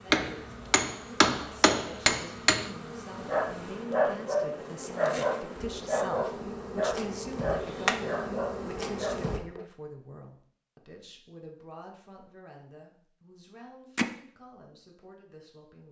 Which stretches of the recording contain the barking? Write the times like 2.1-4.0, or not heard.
3.1-9.7.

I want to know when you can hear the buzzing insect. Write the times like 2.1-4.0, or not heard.
0.0-9.4.